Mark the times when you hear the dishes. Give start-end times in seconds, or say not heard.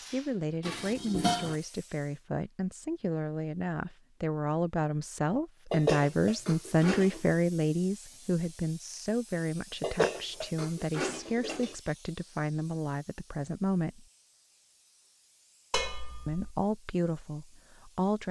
0.6-1.6, 5.7-7.3, 9.8-11.8, 15.7-16.6.